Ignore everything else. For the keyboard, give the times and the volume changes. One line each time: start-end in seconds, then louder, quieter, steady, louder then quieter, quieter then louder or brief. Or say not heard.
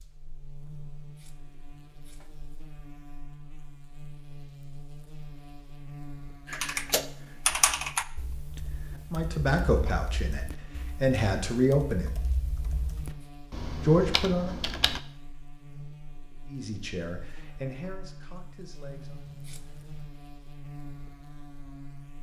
6.5-15.0 quieter then louder.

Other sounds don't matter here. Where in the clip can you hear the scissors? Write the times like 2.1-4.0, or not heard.
0.6-2.5, 12.6-13.3, 18.9-20.1.